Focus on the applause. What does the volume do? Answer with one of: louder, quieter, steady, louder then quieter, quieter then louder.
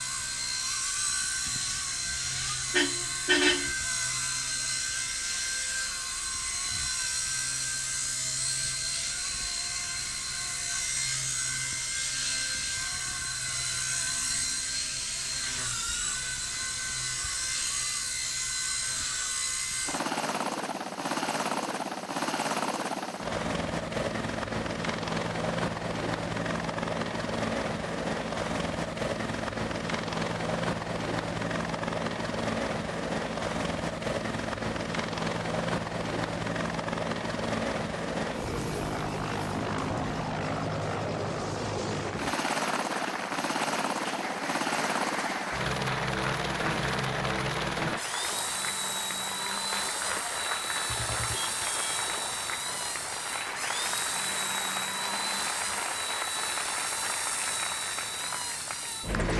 steady.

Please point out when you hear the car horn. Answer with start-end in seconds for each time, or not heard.
2.7-3.7, 50.9-52.1.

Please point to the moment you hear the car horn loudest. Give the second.
3 s.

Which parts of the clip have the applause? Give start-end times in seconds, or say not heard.
41.9-59.3.